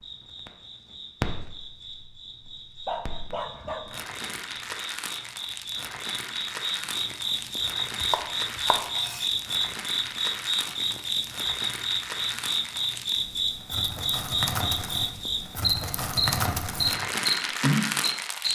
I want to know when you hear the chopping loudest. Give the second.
8 s.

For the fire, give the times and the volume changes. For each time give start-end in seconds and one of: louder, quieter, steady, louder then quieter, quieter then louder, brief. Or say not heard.
0.0-18.4 louder.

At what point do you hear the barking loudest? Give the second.
3 s.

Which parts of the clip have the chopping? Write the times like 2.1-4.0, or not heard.
8.0-9.3.